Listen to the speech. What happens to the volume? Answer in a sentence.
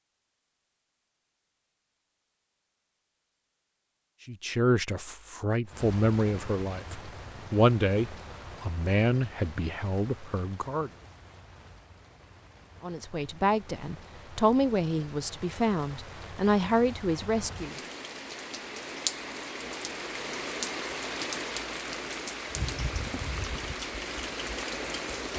The volume of the speech goes down, then up.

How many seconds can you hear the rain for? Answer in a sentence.
You can hear the rain for 20 seconds altogether.